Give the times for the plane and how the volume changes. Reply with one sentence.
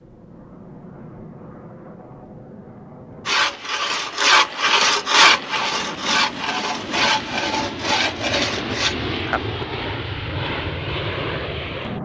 You can hear the plane from 0.0 to 12.0 s, getting louder.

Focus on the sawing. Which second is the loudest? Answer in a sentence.
The loudest moment of the sawing is at 5 seconds.